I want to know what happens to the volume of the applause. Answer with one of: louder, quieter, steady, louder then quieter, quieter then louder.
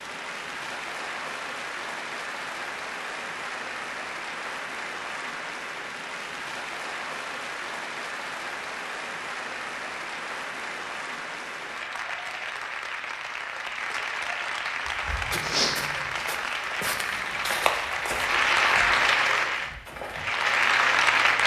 louder.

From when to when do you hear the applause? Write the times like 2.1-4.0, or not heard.
0.0-21.4.